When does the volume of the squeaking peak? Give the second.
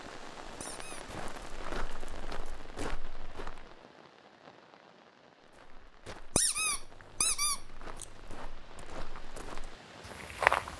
7 s.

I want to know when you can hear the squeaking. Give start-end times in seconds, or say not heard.
0.6-1.1, 6.3-8.1.